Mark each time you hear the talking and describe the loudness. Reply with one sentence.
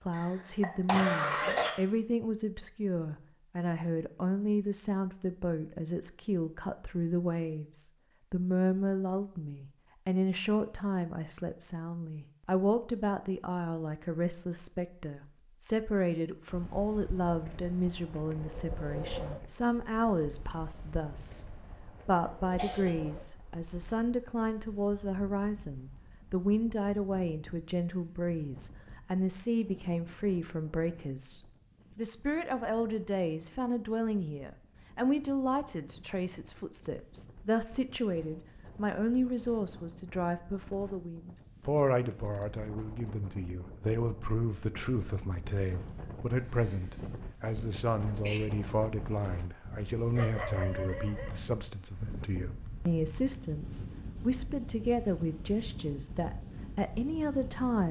The talking can be heard from 0.1 to 57.8 s, at a steady volume.